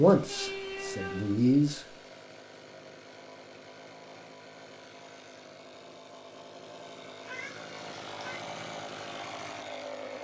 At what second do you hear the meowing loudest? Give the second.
1 s.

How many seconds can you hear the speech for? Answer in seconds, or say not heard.
2 s.